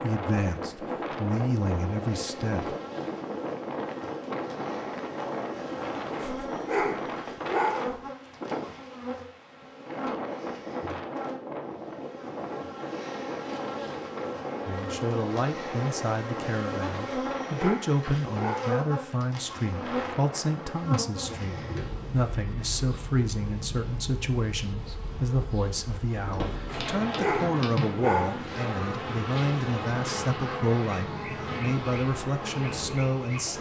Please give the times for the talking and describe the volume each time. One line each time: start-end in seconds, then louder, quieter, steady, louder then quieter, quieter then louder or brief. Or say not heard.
0.0-2.8 brief
14.7-33.5 steady.